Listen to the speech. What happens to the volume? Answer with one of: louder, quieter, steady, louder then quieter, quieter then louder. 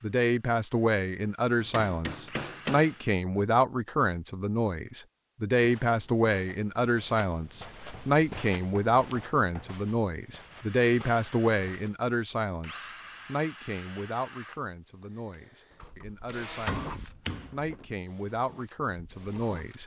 quieter.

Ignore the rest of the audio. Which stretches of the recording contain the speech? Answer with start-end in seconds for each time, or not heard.
0.0-19.8.